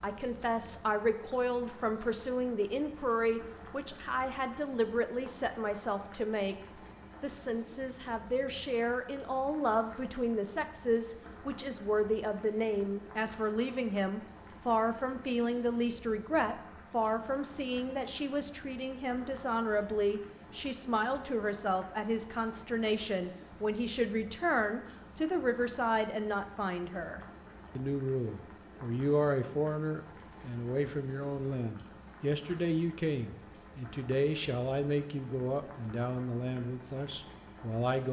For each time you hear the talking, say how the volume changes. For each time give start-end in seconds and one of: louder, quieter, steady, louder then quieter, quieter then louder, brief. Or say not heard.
0.0-38.0 steady.